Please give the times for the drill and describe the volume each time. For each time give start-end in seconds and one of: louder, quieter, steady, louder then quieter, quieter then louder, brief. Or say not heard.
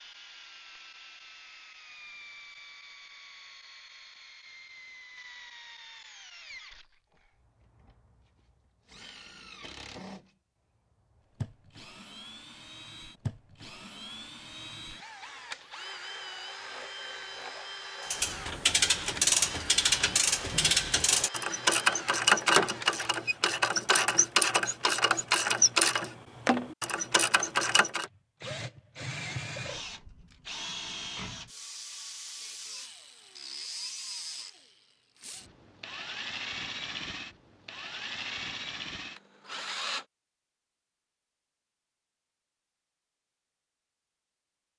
0.0-23.1 louder
28.1-40.0 steady.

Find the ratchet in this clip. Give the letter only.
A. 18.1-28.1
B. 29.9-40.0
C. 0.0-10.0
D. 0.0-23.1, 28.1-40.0
A.